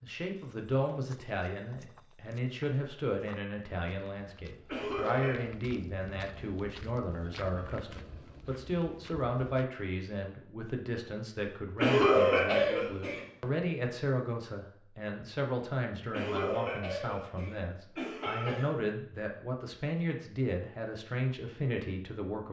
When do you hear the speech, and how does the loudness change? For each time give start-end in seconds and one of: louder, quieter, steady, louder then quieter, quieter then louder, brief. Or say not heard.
0.0-22.4 steady.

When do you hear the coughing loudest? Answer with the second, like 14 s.
12 s.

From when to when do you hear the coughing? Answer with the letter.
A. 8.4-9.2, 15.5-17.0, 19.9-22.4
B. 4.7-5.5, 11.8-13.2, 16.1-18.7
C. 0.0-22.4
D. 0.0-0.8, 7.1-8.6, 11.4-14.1
B.